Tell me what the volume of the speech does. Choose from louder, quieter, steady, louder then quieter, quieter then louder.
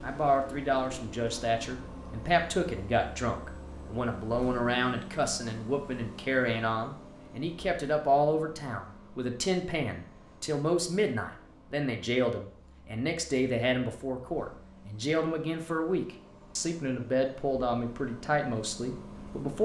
steady.